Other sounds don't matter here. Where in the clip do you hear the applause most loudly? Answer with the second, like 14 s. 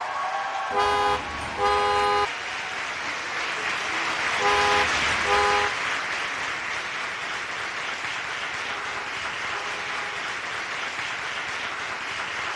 5 s.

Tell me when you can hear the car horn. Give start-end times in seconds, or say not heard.
0.7-2.2, 4.3-5.8, 8.7-10.2.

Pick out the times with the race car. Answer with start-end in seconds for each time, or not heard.
not heard.